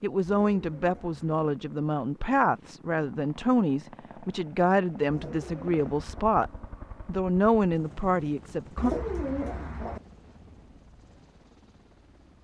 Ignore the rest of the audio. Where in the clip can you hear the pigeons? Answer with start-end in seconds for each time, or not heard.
0.2-1.2, 5.0-6.3, 8.8-10.0.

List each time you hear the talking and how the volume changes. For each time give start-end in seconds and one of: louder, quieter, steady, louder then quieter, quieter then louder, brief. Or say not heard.
0.0-8.9 steady.